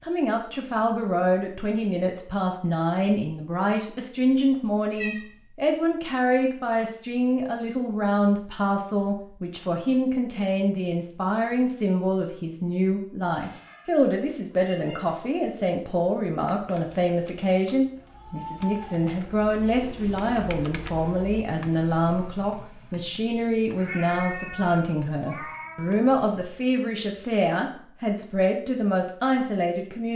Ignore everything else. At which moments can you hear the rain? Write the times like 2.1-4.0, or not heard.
not heard.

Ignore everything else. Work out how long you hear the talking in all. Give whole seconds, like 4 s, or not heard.
30 s.